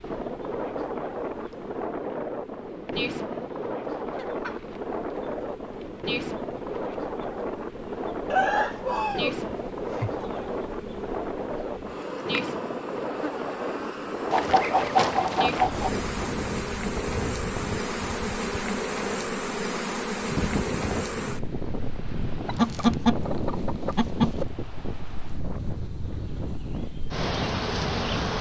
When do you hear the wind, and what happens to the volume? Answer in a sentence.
You can hear the wind from 0.0 to 28.3 s, at a steady volume.